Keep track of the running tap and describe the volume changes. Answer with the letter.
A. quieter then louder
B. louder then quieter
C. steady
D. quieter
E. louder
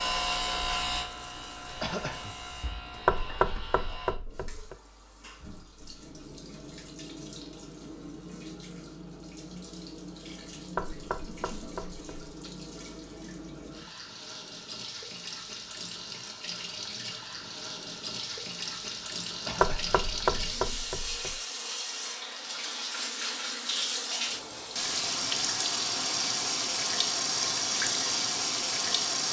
E.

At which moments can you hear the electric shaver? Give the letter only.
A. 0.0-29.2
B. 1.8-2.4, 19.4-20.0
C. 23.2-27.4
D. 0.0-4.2
D.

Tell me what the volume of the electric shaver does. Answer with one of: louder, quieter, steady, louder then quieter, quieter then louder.
quieter.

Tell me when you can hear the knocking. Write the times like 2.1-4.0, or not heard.
3.0-4.8, 10.8-12.3, 19.6-21.4.